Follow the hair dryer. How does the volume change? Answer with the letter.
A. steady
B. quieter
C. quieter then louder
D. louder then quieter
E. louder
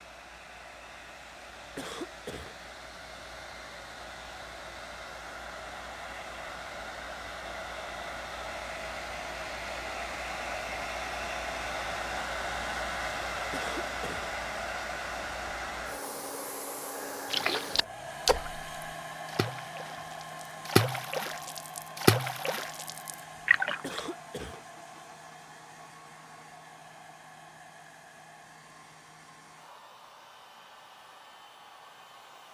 D.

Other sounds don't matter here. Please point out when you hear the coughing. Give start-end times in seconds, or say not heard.
1.8-2.5, 13.5-14.3, 23.8-24.6.